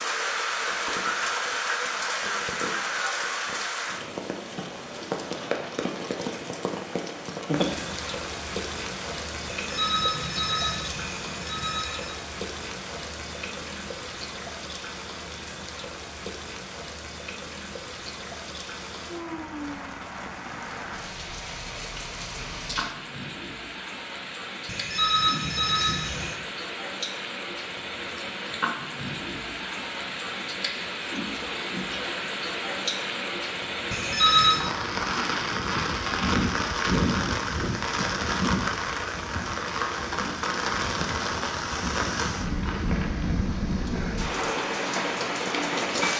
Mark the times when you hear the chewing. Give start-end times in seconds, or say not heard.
not heard.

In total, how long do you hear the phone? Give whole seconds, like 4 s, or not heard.
5 s.